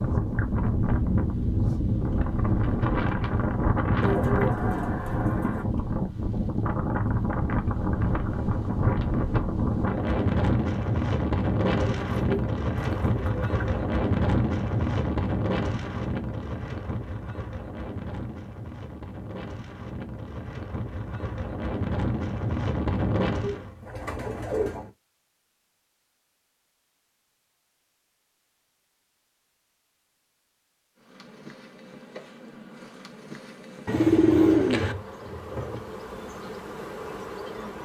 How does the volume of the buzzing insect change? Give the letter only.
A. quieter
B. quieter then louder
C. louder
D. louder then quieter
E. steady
C.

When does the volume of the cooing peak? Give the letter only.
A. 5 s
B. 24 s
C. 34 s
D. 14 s
C.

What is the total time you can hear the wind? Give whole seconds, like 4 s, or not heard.
24 s.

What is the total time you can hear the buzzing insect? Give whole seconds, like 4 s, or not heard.
7 s.